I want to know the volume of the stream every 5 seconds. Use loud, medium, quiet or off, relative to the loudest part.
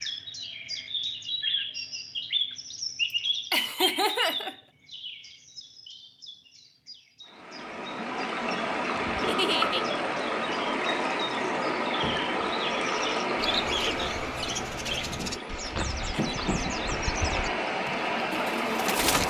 off, loud, loud, loud.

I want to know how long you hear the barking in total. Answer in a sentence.
You can't hear the barking here.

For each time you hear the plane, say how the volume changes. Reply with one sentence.
You can't hear the plane here.